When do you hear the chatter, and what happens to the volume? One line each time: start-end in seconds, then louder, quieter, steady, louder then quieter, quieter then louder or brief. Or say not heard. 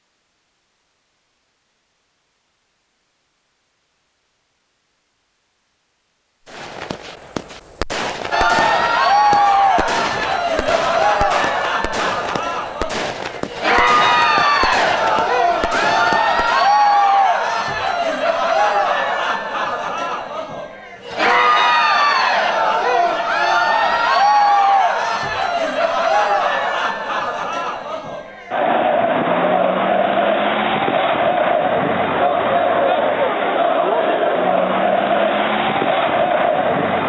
8.3-37.0 steady.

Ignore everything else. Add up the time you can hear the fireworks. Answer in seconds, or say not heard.
10 s.